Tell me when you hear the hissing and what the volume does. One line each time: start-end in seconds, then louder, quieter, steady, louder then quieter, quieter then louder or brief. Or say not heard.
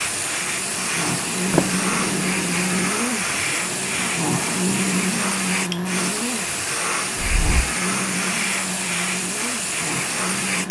0.0-10.6 steady.